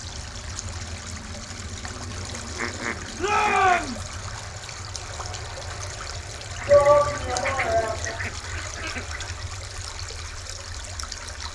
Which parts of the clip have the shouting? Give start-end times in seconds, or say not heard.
3.1-4.0, 6.7-8.2.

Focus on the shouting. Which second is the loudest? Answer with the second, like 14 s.
7 s.